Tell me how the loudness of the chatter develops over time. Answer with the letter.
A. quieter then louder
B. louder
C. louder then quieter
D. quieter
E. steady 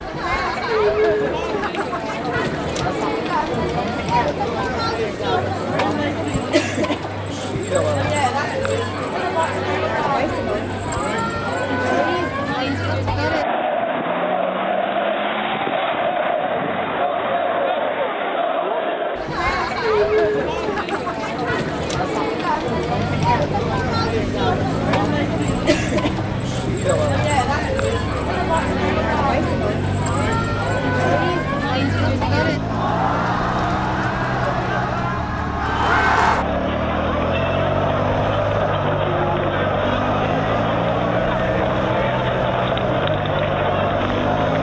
E.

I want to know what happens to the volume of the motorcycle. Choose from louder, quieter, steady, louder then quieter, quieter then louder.
steady.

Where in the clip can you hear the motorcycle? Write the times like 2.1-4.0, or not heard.
22.9-44.5.